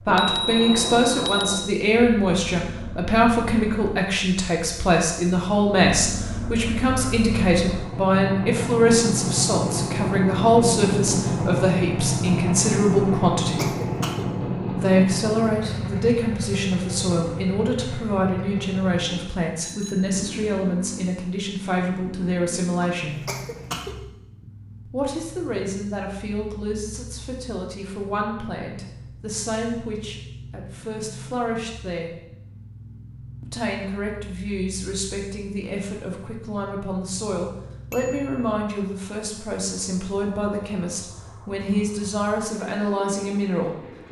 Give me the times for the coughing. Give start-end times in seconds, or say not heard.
13.1-14.2, 22.9-23.9.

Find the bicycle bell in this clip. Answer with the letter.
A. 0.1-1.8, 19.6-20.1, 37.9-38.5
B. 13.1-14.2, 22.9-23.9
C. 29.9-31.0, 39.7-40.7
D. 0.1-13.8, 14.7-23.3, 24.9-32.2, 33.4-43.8
A.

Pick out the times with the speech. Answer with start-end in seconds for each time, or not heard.
0.1-13.8, 14.7-23.3, 24.9-32.2, 33.4-43.8.